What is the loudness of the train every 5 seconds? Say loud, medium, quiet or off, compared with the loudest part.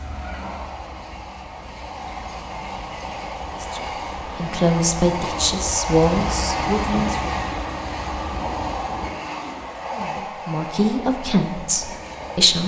medium, loud, medium.